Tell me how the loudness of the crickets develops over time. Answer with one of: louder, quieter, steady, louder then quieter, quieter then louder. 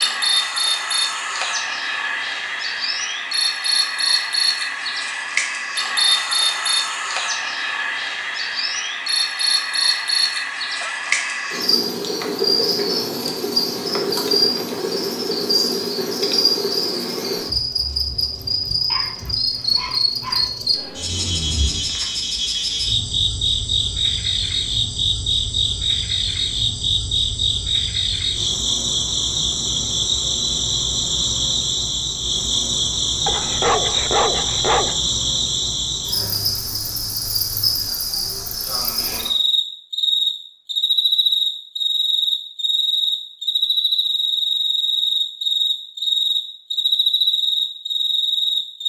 steady.